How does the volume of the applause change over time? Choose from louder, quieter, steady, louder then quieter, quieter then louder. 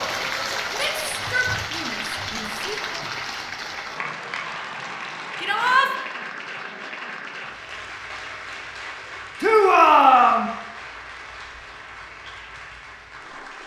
quieter.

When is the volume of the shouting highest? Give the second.
10 s.